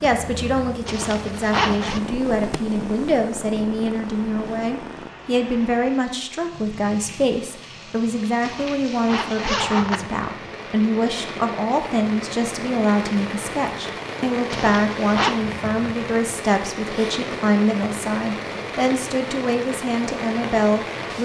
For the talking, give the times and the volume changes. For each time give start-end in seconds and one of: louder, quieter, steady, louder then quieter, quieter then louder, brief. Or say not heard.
0.0-21.1 steady.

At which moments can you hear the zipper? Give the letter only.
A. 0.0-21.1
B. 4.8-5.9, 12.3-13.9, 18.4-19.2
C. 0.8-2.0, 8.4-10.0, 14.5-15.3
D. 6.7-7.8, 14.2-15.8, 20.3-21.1
C.